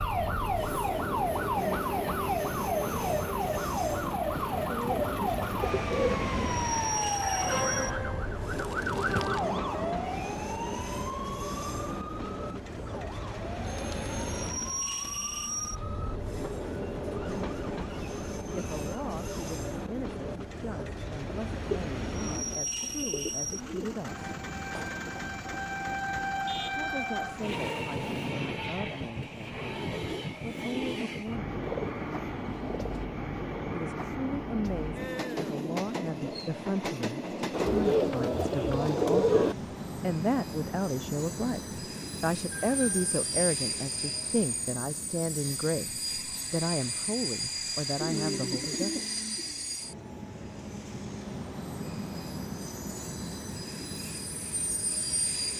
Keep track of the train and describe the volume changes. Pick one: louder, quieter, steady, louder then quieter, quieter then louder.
steady.